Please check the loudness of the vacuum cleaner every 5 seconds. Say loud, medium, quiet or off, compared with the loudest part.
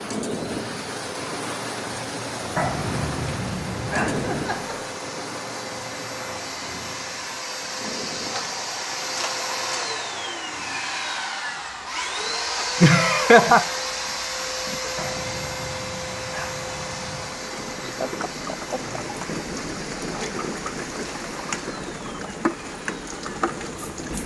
medium, loud, loud, medium, quiet.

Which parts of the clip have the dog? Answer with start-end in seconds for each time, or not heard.
2.5-4.6, 14.9-17.4.